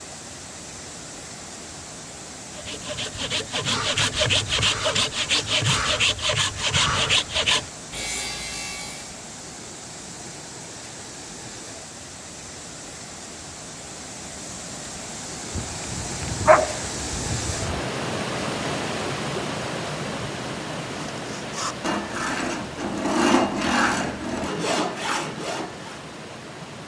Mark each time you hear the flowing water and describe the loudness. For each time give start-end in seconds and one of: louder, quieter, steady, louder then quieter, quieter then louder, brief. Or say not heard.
0.0-26.8 louder then quieter.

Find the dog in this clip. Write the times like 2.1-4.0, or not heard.
15.6-17.8.